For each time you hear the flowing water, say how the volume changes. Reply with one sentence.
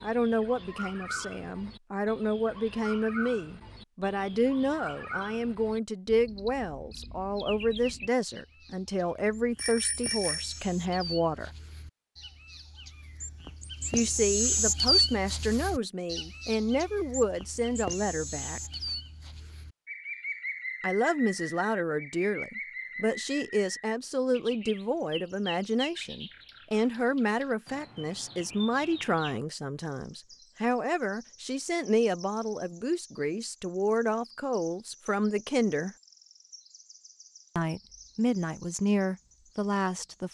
You can't hear the flowing water here.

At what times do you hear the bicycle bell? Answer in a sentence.
The bicycle bell can be heard from 9.6 to 10.6 s.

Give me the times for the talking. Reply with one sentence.
You can hear the talking from 0.0 to 11.5 s, from 13.9 to 18.6 s, from 20.8 to 36.0 s and from 37.5 to 40.2 s.